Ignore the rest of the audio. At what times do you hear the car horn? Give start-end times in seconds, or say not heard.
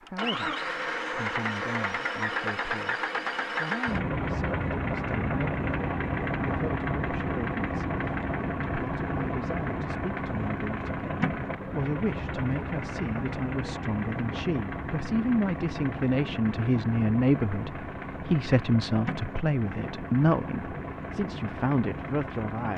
not heard.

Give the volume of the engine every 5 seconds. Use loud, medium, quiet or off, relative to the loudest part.
loud, loud, loud, medium, medium.